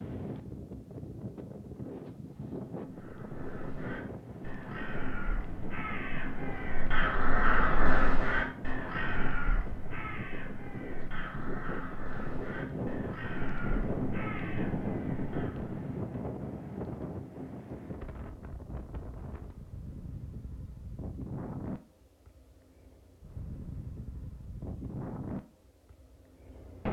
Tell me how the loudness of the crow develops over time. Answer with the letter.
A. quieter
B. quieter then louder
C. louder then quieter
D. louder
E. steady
C.